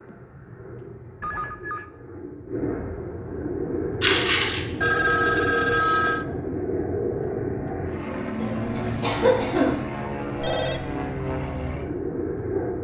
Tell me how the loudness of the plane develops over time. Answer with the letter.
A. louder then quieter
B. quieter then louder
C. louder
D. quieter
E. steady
C.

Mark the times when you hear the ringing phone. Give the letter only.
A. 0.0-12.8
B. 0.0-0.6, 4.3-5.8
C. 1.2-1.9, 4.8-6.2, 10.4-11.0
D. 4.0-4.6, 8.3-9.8
C.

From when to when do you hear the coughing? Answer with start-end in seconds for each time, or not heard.
4.0-4.6, 8.3-9.8.